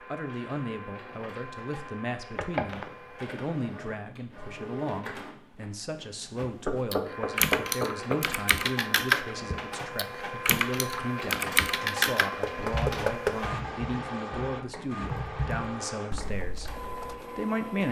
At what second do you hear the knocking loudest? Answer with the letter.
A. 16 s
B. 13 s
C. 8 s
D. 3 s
B.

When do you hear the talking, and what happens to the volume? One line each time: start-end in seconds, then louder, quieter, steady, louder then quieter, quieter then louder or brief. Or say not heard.
0.0-17.8 steady.